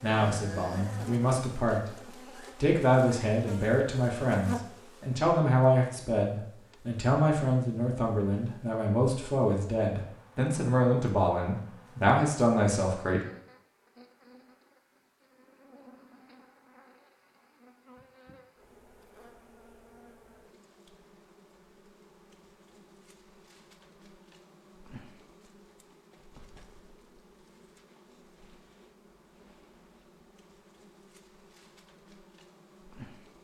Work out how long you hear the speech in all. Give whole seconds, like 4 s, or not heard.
13 s.